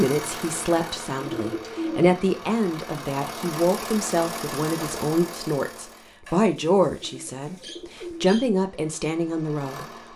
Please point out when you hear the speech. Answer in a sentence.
You can hear the speech from 0.0 to 10.1 s.